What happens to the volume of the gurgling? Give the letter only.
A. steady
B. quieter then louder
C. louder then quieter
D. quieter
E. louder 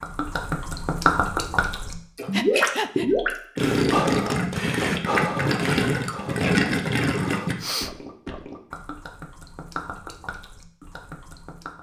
D.